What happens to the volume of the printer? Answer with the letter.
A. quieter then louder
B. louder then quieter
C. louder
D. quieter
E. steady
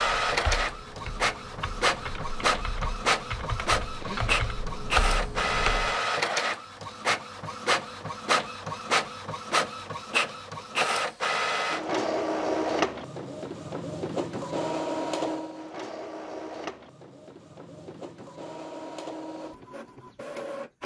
D.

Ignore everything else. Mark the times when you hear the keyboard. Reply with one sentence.
The keyboard can be heard from 0.0 to 6.0 s.